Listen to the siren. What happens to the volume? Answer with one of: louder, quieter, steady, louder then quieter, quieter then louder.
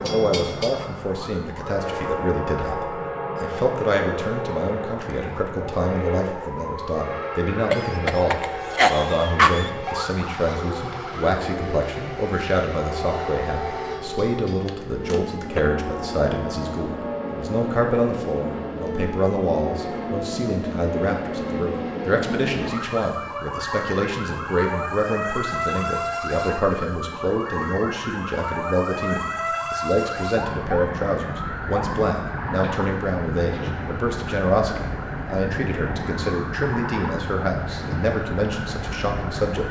louder.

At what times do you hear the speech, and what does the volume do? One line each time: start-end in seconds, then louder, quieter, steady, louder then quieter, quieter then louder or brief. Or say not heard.
0.0-39.6 steady.